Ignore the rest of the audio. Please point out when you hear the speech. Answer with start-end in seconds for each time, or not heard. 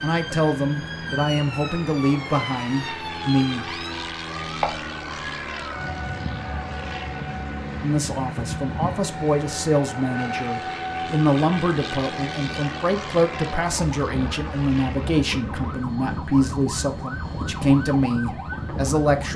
0.0-3.6, 7.8-19.3.